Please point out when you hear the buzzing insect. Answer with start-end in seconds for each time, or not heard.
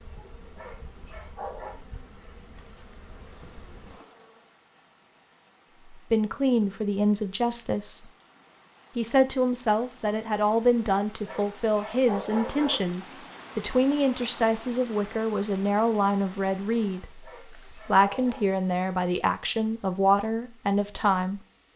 0.0-4.5.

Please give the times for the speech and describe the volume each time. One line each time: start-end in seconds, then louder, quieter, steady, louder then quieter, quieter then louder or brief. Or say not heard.
5.9-8.1 brief
8.9-21.4 steady.